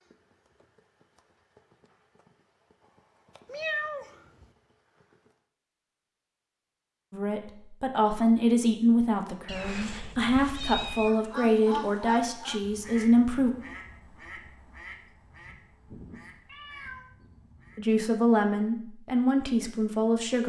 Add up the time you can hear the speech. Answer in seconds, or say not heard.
9 s.